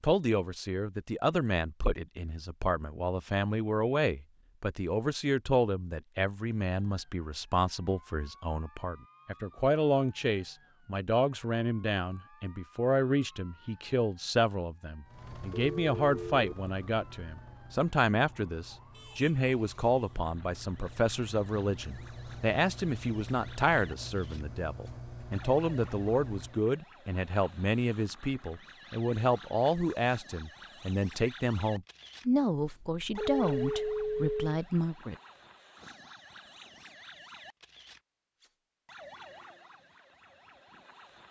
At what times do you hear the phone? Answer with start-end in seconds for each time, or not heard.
15.5-16.6, 32.6-34.6.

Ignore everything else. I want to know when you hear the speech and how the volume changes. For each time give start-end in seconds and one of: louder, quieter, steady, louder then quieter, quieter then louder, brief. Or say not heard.
0.0-35.1 steady.